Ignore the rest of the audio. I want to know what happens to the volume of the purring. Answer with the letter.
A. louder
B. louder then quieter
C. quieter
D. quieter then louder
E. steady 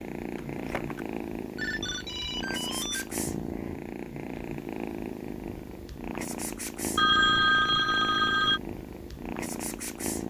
E.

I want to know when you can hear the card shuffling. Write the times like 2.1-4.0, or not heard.
0.3-1.1.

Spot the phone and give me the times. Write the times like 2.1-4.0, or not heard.
1.6-3.5, 7.0-8.6.